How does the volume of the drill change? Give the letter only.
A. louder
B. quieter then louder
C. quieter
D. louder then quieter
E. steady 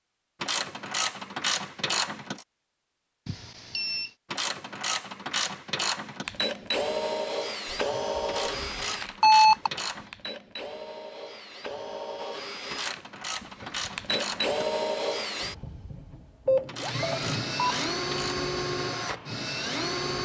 B.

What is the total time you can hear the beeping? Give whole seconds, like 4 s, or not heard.
4 s.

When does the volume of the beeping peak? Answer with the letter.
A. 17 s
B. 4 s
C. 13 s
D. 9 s
D.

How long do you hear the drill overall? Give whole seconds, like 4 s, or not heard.
14 s.